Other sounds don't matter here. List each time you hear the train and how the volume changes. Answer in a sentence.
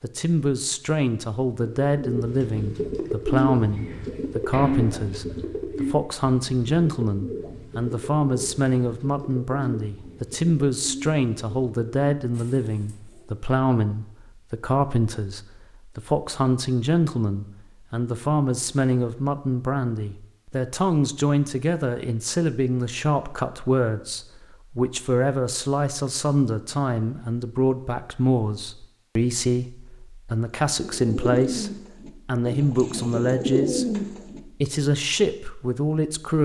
The train can't be heard in this clip.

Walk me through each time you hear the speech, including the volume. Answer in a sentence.
The speech can be heard from 0.0 to 36.4 s, at a steady volume.